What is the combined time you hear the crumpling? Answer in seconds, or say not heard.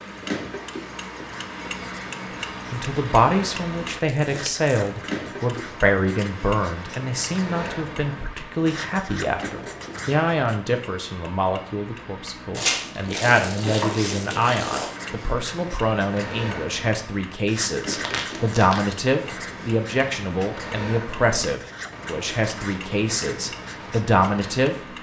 4 s.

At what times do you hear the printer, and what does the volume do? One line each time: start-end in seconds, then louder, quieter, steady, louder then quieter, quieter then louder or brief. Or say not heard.
not heard.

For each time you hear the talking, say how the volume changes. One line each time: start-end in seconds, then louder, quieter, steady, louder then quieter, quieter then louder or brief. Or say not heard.
2.7-24.9 steady.